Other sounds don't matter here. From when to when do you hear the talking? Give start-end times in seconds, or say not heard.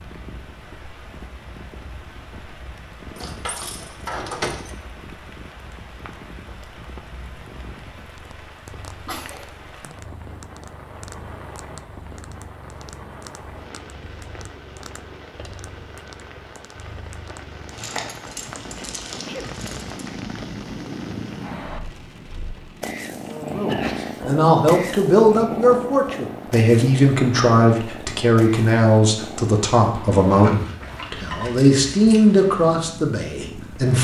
23.5-33.9.